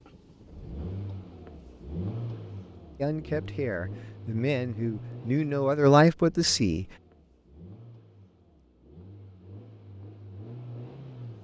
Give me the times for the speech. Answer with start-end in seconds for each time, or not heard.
3.0-6.8.